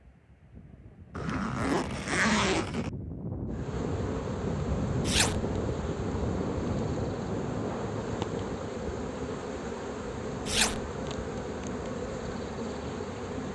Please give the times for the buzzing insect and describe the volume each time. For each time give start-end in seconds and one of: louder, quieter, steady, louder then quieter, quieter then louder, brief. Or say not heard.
3.5-13.5 steady.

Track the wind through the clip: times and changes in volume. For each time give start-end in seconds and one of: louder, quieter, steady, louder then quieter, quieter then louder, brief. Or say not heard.
0.0-13.5 louder then quieter.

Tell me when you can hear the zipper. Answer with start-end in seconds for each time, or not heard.
1.1-2.9, 5.0-5.5, 10.4-10.8.